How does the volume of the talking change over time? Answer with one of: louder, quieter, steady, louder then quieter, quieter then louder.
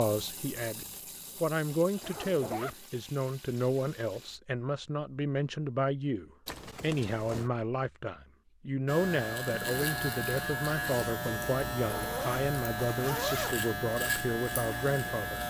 steady.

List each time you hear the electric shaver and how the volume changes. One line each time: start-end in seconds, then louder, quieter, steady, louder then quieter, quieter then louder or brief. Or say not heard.
8.8-15.4 steady.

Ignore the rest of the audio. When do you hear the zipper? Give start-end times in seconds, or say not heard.
2.0-2.8, 6.5-7.5, 11.9-13.7.